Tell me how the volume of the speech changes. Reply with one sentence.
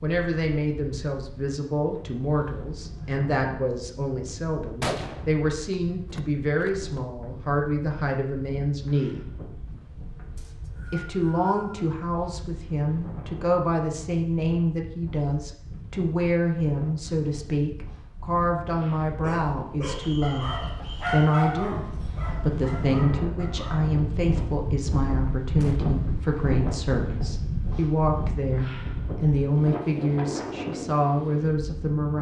The loudness of the speech stays about the same.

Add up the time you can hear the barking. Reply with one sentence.
The barking can be heard for 5 seconds in total.